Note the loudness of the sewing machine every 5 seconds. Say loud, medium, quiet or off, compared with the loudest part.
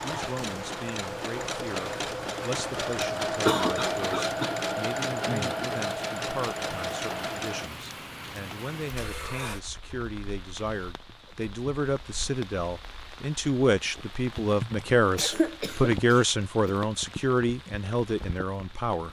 loud, loud, off, off.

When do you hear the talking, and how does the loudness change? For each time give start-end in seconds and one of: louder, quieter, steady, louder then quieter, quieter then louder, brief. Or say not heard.
0.0-19.0 louder.